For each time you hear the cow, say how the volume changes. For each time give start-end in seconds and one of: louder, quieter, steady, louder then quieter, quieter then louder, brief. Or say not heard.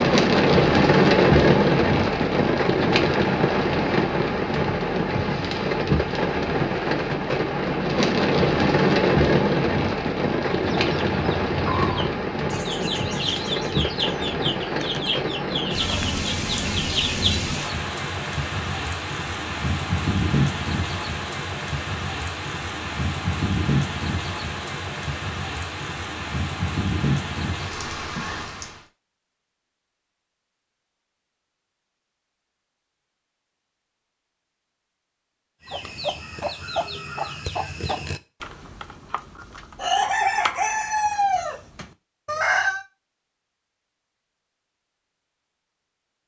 not heard.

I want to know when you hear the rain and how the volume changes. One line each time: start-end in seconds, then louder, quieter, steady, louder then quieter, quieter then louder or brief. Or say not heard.
0.0-28.9 quieter.